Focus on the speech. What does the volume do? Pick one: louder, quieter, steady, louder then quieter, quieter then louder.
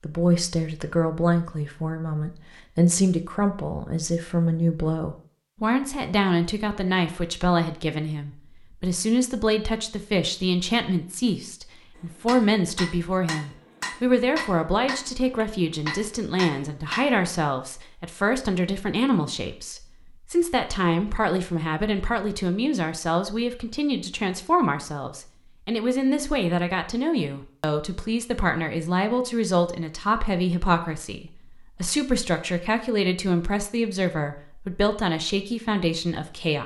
steady.